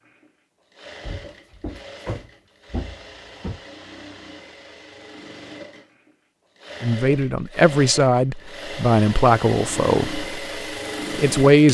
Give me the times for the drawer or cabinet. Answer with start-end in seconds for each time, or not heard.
1.0-3.6.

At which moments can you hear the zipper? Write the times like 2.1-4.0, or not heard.
not heard.